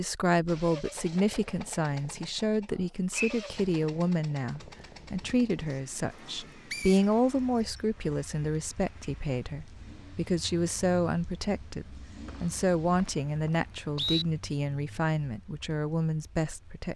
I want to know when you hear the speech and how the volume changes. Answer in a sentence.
The speech can be heard from 0.0 to 16.9 s, at a steady volume.